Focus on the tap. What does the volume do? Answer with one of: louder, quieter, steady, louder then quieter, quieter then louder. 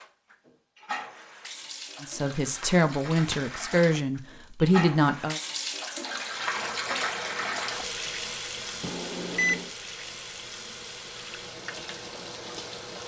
louder then quieter.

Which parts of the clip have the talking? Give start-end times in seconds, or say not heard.
2.0-5.4.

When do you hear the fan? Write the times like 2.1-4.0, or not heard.
6.2-13.0.